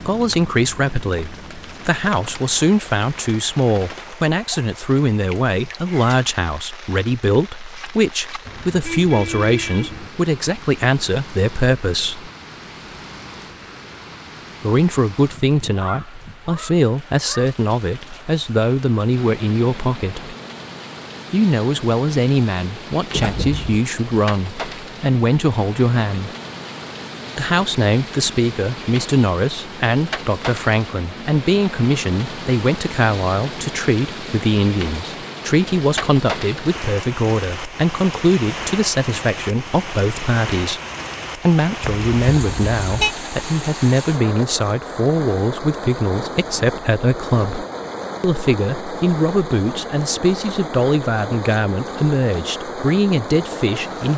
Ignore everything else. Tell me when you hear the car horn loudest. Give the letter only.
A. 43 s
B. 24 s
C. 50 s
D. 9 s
A.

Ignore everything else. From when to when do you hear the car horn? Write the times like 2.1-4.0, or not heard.
8.4-10.1, 23.1-23.8, 41.8-43.1.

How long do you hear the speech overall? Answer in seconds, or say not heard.
50 s.